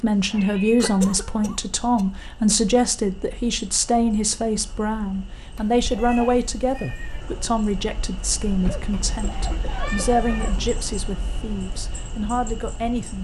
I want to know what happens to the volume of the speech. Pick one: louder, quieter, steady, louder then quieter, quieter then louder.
quieter.